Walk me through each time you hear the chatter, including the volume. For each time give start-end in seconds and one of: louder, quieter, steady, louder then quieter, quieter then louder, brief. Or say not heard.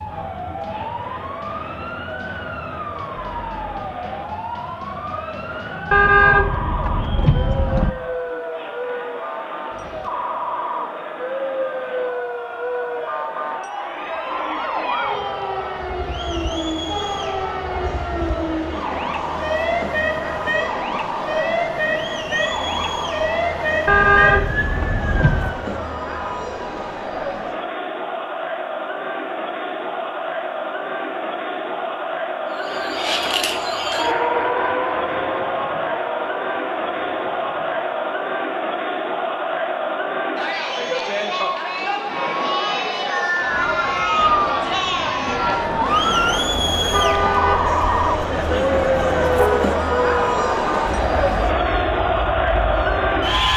0.0-53.5 louder.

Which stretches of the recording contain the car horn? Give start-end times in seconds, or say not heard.
5.9-7.9, 23.9-25.6, 46.9-49.6.